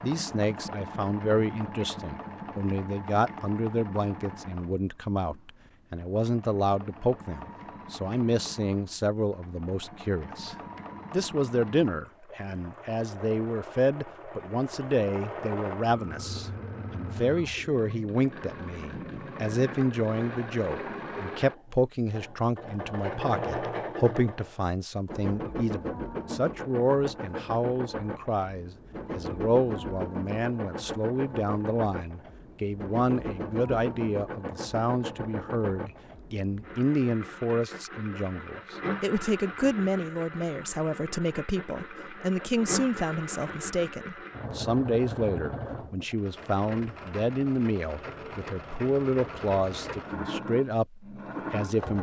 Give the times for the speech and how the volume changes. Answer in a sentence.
The speech can be heard from 0.0 to 51.9 s, at a steady volume.